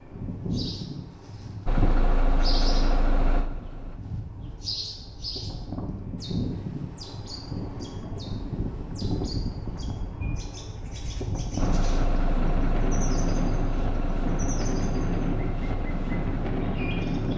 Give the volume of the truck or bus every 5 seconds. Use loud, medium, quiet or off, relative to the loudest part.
loud, off, loud, medium.